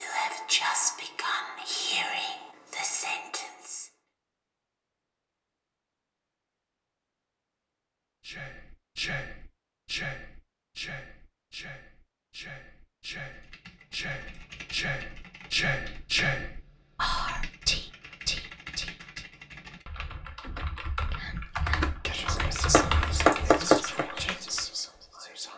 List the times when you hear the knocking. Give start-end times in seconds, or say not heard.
22.7-24.1.